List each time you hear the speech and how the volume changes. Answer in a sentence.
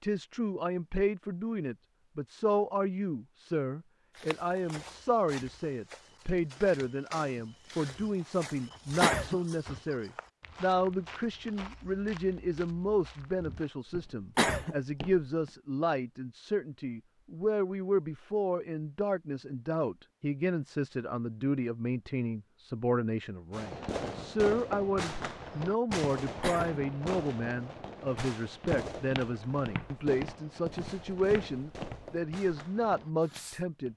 The speech can be heard from 0.0 to 33.9 s, at a steady volume.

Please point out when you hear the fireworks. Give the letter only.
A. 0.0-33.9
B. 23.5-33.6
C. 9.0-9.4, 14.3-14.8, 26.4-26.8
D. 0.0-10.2
B.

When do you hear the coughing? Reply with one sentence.
The coughing can be heard from 9.0 to 9.4 s, from 14.3 to 14.8 s and from 26.4 to 26.8 s.